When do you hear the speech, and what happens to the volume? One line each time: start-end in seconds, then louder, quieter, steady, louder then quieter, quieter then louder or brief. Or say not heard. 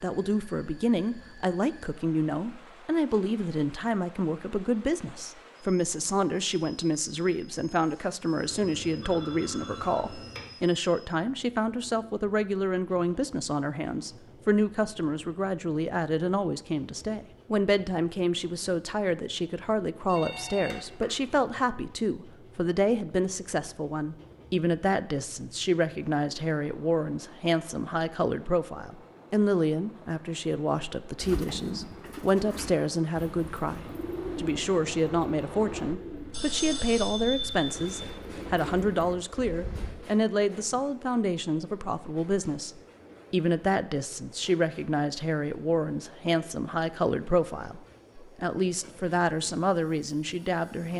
0.0-50.9 steady.